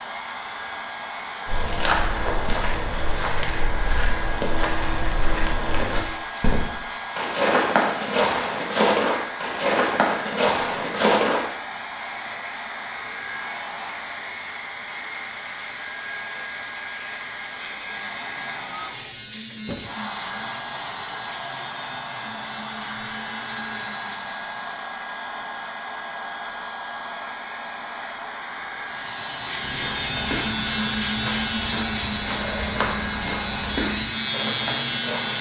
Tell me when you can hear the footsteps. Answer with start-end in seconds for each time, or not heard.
1.4-11.4, 29.6-35.3.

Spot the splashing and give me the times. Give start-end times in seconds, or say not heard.
not heard.